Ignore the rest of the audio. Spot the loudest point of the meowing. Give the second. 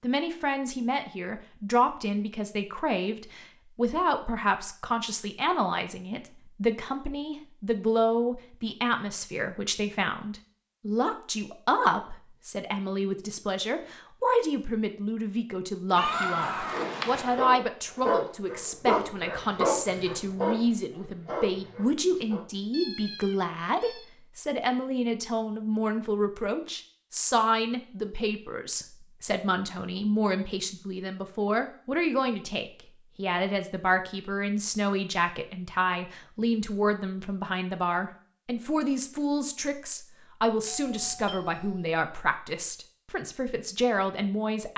16 s.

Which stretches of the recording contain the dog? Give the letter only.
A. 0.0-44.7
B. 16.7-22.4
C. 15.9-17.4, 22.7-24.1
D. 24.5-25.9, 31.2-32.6
B.